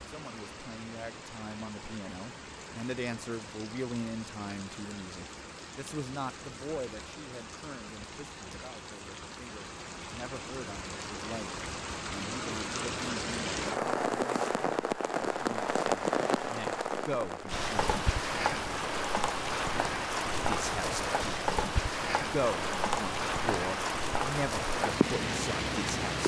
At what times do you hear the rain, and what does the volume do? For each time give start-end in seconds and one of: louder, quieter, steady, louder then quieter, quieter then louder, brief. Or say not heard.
0.0-26.2 louder.